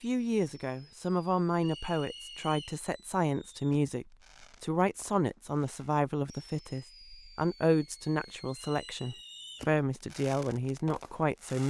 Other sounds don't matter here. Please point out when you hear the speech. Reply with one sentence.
You can hear the speech from 0.0 to 11.6 s.